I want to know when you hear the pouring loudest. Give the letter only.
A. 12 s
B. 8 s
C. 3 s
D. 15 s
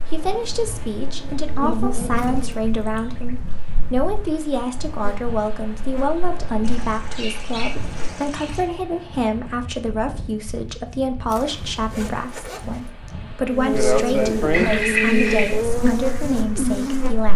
D.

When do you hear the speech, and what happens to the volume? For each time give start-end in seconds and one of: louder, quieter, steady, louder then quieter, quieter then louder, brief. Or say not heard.
0.0-17.3 steady.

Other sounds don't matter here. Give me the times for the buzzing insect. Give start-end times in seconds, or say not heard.
0.0-8.3, 13.5-17.3.